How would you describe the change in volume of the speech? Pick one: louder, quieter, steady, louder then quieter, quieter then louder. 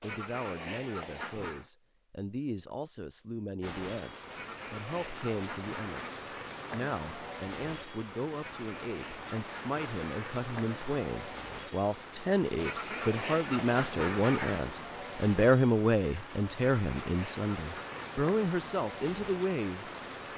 louder.